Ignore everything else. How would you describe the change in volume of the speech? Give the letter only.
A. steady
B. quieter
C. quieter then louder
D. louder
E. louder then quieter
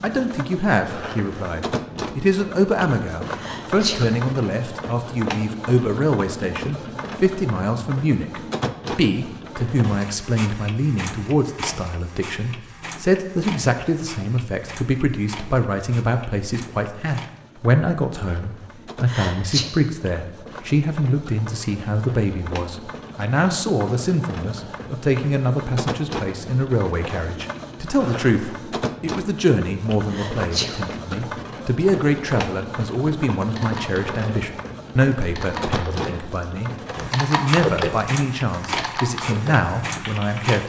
A.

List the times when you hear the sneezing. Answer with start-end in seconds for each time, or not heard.
3.4-4.0, 19.1-19.6, 30.1-30.8.